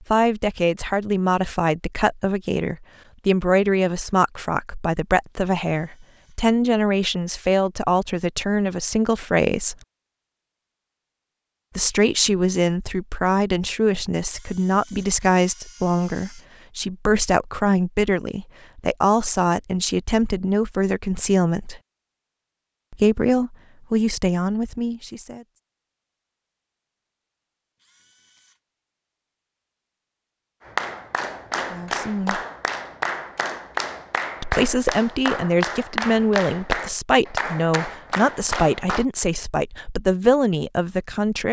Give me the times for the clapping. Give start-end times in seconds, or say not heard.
30.6-39.0.